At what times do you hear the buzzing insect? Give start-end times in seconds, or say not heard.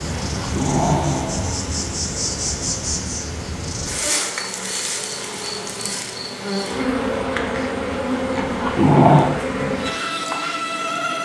0.0-11.1.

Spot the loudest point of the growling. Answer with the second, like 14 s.
9 s.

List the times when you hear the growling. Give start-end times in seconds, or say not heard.
0.2-1.8, 8.3-9.3.